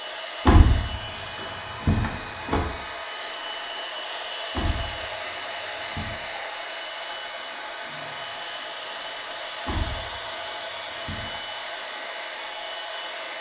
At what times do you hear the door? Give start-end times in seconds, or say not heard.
0.5-2.6, 4.5-6.2, 9.7-11.3.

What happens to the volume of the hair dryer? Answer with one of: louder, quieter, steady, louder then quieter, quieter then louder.
steady.